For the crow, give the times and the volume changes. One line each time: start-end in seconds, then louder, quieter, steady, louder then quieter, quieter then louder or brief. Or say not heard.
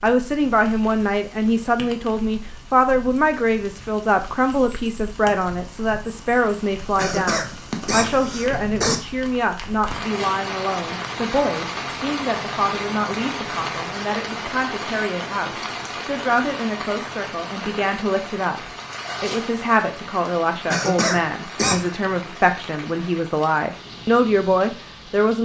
not heard.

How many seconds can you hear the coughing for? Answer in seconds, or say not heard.
3 s.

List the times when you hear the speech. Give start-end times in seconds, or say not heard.
0.0-25.3.